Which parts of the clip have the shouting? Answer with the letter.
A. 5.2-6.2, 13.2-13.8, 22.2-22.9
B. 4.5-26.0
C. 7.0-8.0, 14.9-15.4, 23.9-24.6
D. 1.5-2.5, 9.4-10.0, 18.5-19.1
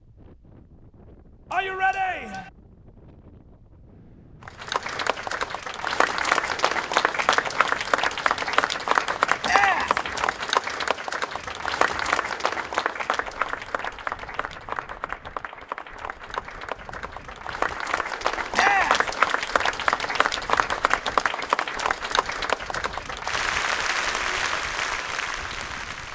D.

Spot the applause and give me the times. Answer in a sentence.
You can hear the applause from 4.5 to 26.0 s.